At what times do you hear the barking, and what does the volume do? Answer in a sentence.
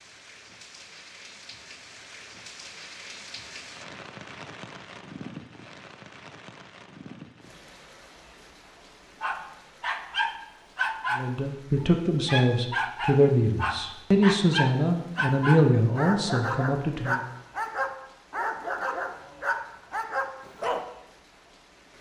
The barking can be heard from 9.2 to 20.9 s, at a steady volume.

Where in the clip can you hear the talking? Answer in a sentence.
You can hear the talking from 11.2 to 17.2 s.